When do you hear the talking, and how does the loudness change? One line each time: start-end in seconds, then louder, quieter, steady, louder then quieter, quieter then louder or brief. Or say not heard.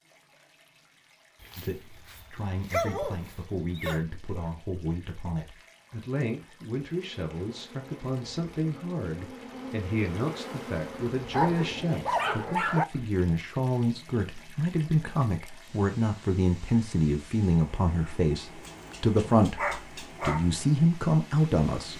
1.6-21.9 louder.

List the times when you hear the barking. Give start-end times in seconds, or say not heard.
1.4-4.0, 11.3-12.8, 18.6-20.5.